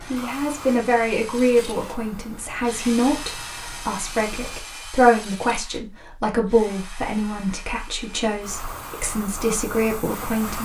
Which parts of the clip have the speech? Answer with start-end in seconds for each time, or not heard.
0.1-10.6.